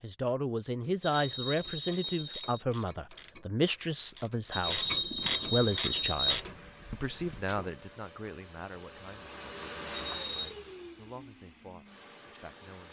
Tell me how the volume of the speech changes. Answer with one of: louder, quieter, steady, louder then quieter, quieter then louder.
quieter.